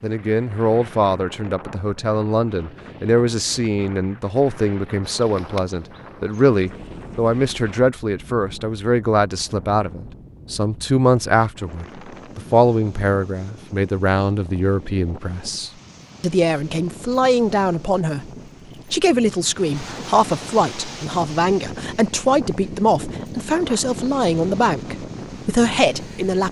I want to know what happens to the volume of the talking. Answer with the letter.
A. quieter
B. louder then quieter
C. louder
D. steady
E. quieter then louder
D.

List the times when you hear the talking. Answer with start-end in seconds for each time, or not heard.
0.0-18.3, 18.9-26.4.